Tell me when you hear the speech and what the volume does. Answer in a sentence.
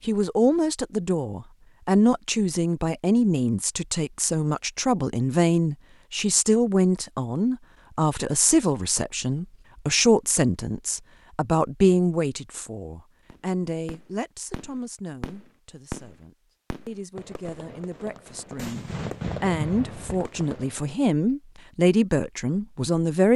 You can hear the speech from 0.1 to 23.3 s, getting quieter then louder.